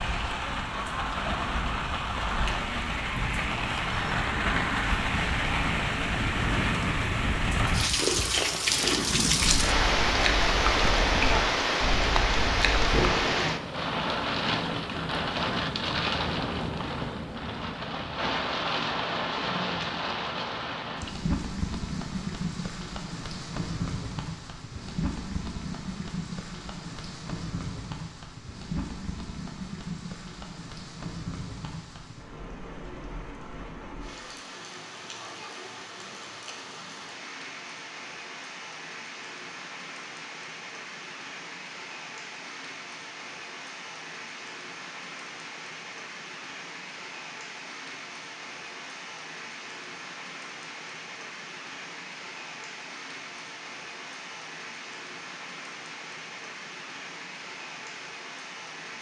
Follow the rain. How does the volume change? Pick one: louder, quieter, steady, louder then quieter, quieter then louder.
quieter.